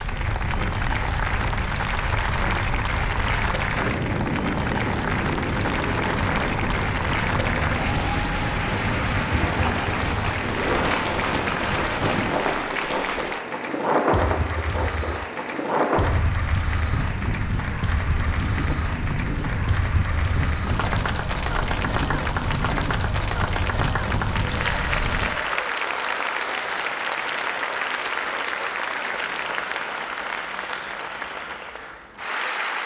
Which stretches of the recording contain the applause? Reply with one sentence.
The applause can be heard from 0.0 to 32.8 s.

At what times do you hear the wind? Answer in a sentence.
The wind can be heard from 0.0 to 25.3 s.